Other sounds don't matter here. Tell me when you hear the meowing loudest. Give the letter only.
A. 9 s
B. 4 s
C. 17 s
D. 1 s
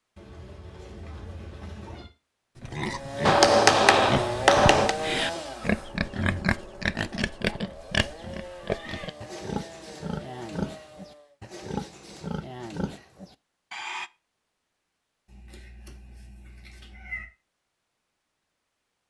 C.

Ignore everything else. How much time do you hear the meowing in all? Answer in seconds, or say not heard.
5 s.